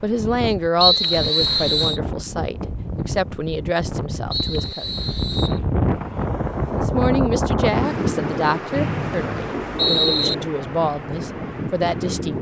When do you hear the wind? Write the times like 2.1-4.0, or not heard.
0.0-12.3.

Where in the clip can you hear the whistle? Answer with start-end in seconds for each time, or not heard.
0.8-2.0, 4.3-5.6, 8.8-10.3.